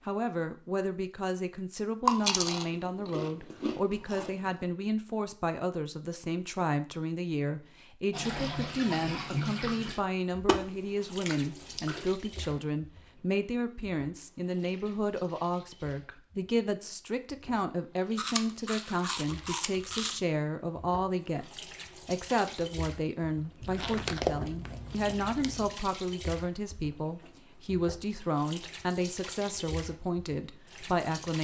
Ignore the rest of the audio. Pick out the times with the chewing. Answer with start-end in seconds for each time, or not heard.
2.0-4.5, 10.4-12.1, 18.1-20.2, 23.6-25.8.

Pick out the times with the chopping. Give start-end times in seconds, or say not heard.
not heard.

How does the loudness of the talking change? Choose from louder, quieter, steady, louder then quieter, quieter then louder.
steady.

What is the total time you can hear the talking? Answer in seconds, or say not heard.
31 s.